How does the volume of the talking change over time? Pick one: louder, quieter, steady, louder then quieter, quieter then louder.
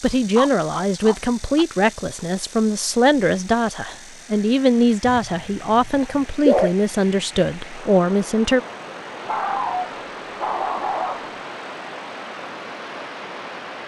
steady.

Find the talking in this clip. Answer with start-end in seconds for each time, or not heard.
0.0-8.6.